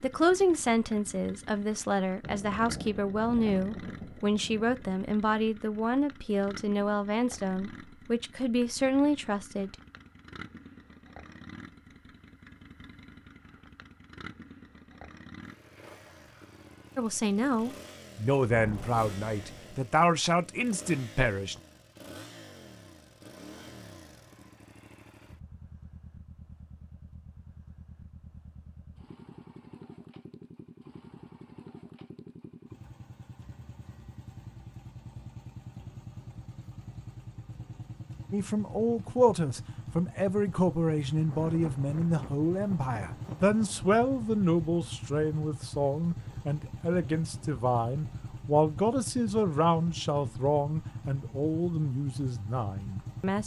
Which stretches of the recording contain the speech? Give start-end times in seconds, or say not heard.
0.0-9.8, 16.9-21.6, 38.3-53.4.